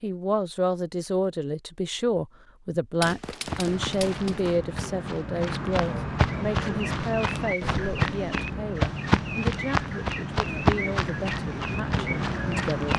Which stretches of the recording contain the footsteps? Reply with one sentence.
You can hear the footsteps from 3.5 to 12.9 s.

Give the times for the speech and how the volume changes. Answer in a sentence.
The speech can be heard from 0.0 to 12.9 s, getting quieter.